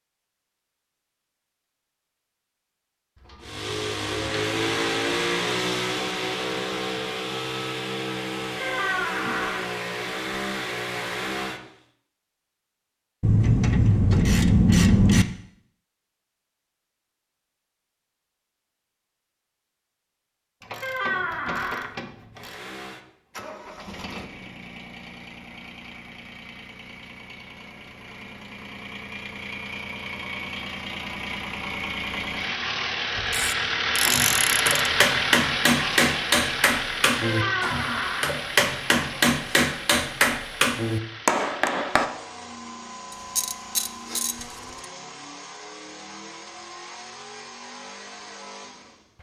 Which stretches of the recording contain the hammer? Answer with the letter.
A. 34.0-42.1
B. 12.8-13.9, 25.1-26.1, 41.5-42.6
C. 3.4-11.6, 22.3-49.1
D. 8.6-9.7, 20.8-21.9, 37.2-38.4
A.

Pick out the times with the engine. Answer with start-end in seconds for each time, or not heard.
3.4-11.6, 22.3-49.1.